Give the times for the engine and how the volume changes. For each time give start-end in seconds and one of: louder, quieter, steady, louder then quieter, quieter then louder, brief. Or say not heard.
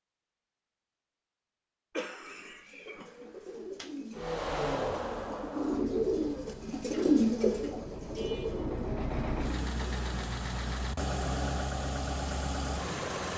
4.1-13.3 quieter then louder.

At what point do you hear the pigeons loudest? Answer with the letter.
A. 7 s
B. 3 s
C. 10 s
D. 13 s
A.